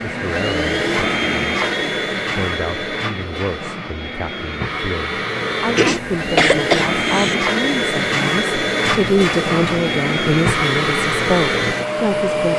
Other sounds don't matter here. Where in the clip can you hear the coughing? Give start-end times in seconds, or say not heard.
5.8-7.3.